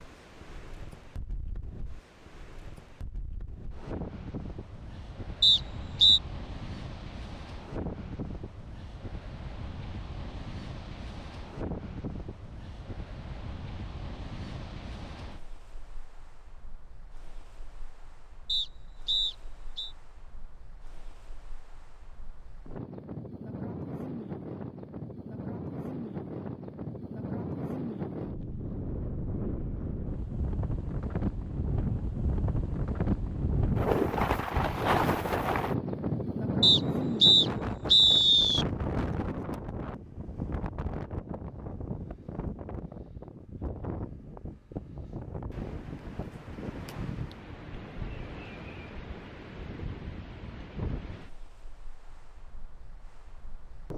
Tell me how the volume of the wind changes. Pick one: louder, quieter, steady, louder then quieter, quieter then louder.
louder then quieter.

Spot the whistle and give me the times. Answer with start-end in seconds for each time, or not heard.
5.4-6.2, 18.4-19.9, 36.6-38.6.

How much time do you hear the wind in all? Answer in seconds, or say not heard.
54 s.